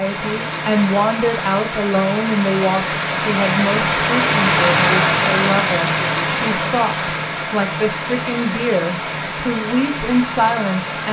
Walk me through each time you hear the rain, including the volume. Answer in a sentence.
The rain can be heard from 0.0 to 11.0 s, getting louder then quieter.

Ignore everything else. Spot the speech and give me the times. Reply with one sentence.
You can hear the speech from 0.0 to 11.0 s.